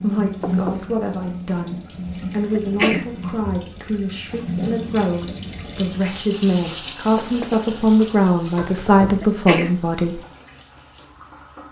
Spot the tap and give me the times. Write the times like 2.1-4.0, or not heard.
0.0-11.6.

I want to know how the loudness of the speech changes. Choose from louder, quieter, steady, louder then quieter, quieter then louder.
louder.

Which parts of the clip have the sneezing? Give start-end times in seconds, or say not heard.
2.5-3.1, 9.2-9.8.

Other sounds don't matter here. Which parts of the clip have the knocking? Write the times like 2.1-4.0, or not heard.
0.4-0.8, 7.2-7.7.